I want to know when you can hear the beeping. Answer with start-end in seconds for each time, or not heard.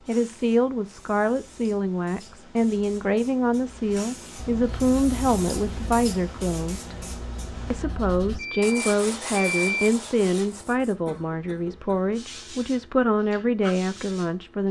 8.3-9.9.